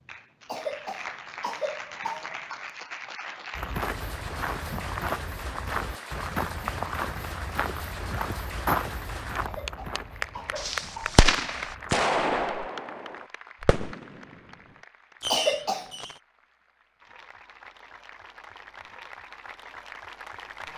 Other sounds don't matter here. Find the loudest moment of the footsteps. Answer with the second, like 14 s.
9 s.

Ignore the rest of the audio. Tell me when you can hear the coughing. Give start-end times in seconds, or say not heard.
0.5-2.7, 9.4-11.2, 15.3-15.9.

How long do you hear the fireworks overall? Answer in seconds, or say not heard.
5 s.